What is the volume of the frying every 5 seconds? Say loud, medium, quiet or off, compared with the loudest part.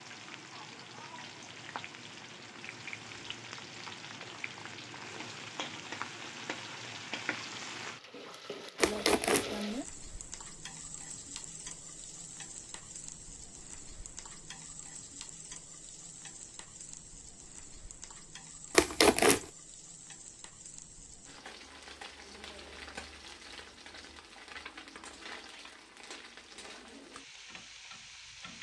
medium, loud, medium, medium, medium, medium.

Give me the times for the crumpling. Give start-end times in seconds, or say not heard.
8.8-9.6, 18.8-19.4.